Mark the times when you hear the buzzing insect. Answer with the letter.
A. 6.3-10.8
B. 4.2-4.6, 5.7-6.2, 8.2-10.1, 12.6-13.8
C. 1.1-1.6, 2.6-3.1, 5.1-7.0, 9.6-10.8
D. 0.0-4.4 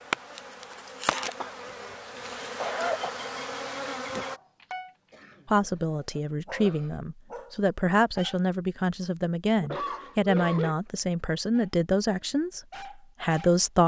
D.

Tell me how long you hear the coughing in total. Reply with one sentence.
You can hear the coughing for 4 seconds altogether.